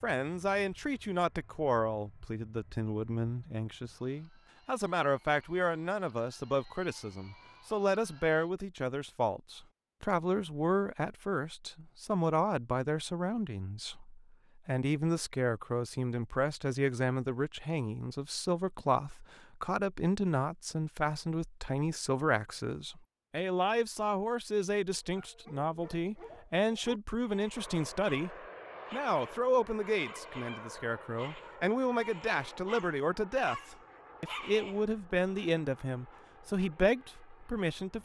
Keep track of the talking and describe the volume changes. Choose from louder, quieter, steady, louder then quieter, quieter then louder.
steady.